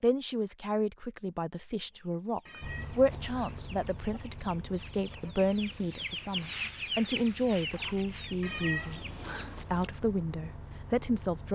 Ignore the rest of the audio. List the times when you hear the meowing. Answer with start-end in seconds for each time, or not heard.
2.5-3.9, 8.4-9.9.